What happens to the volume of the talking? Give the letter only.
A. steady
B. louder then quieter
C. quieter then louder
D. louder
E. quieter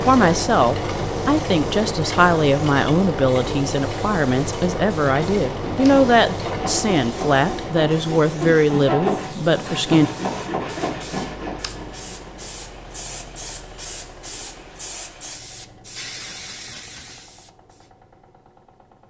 A.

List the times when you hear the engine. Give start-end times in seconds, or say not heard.
0.0-19.0.